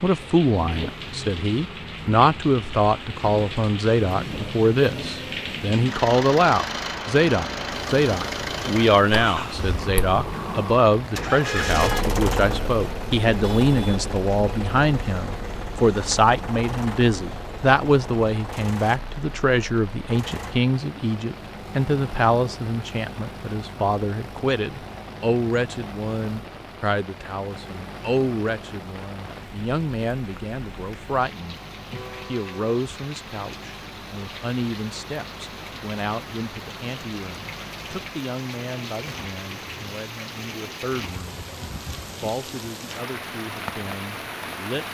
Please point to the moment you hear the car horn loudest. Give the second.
12 s.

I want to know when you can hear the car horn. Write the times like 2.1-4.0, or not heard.
11.4-12.1, 31.9-32.7.